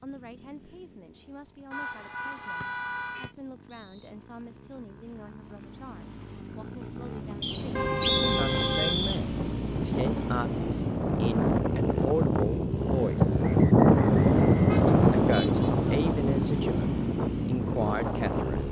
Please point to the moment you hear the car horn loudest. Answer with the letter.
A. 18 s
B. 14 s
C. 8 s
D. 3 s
C.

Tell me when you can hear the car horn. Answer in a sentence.
The car horn can be heard from 1.7 to 3.4 s, from 7.8 to 9.1 s and from 14.6 to 15.7 s.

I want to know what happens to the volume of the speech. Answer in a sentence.
The volume of the speech goes up.